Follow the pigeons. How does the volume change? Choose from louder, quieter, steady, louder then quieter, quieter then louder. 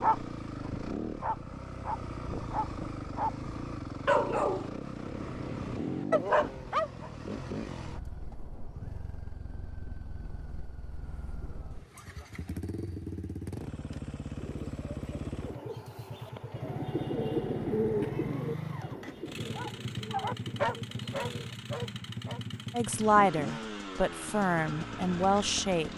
louder then quieter.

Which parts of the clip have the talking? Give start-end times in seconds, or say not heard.
22.7-25.9.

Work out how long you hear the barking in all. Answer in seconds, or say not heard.
10 s.